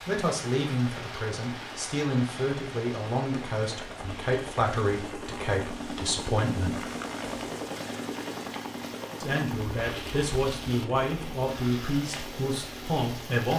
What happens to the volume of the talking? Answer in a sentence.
The loudness of the talking stays about the same.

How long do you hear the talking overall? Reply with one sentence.
You can hear the talking for 11 seconds altogether.